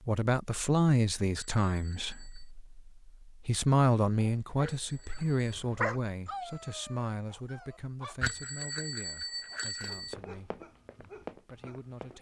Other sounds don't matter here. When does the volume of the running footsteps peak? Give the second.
11 s.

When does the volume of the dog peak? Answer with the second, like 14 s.
6 s.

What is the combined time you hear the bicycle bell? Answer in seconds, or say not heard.
4 s.